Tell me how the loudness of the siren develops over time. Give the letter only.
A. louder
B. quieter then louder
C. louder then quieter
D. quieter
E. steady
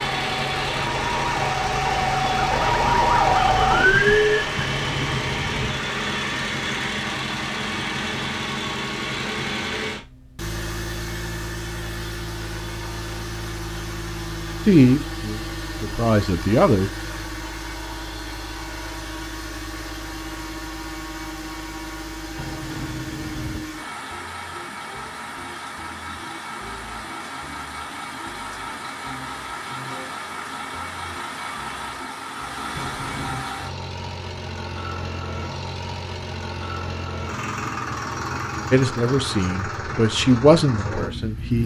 A.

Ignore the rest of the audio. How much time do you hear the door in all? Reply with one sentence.
You can hear the door for 3 seconds altogether.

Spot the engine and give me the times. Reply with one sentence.
You can hear the engine from 0.0 to 41.6 s.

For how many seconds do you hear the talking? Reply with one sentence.
The talking can be heard for 5 seconds in total.